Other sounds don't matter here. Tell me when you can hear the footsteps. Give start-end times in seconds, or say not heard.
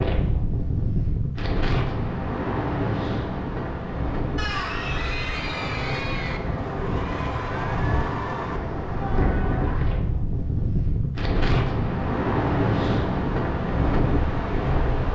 not heard.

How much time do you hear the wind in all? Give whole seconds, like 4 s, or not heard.
15 s.